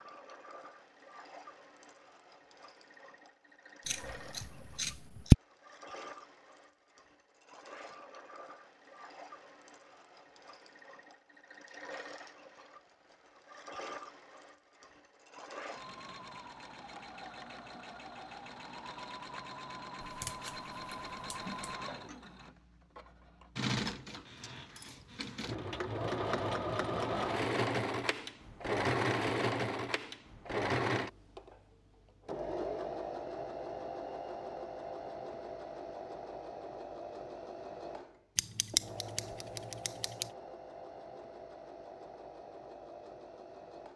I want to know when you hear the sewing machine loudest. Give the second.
29 s.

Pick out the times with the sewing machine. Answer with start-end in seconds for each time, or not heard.
0.0-43.9.